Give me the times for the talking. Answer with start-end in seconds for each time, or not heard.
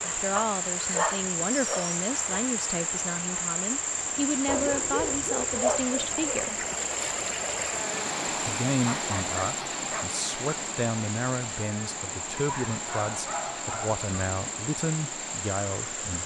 0.0-6.7, 8.2-16.2.